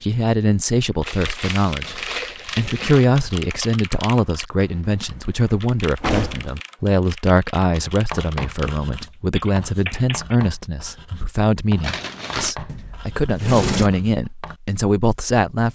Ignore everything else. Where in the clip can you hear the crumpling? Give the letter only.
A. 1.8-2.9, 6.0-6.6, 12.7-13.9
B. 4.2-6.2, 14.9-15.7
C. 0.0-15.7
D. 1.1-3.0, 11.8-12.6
D.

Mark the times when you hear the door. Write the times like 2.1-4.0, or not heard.
1.8-2.9, 6.0-6.6, 12.7-13.9.